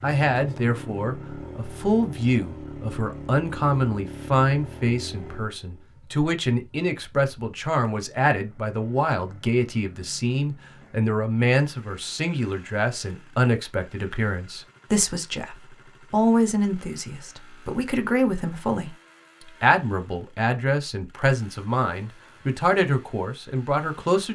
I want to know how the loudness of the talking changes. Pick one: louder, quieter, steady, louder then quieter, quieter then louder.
steady.